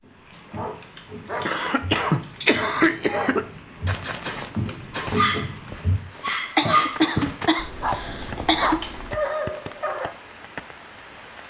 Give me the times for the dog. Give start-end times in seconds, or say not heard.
0.5-10.1.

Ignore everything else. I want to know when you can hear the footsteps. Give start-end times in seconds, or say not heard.
0.0-7.4.